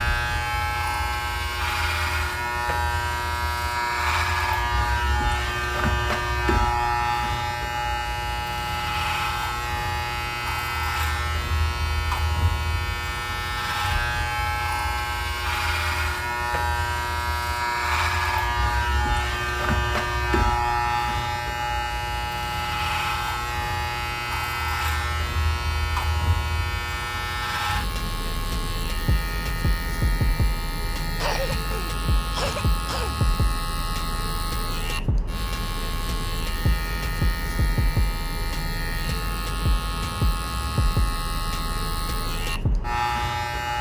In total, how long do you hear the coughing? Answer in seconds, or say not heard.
2 s.